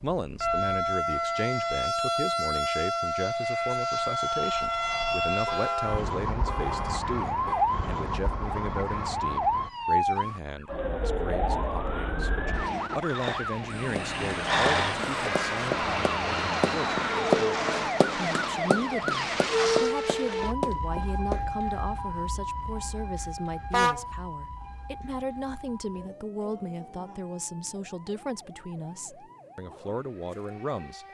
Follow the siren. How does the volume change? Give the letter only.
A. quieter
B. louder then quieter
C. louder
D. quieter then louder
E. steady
A.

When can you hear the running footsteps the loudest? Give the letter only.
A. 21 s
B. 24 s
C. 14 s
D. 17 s
D.